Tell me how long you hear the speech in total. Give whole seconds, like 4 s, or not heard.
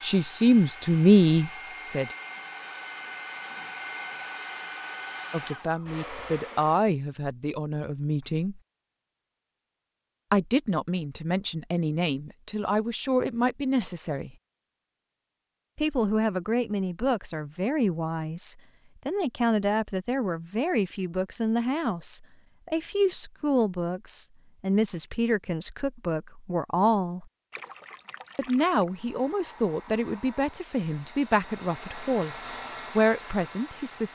27 s.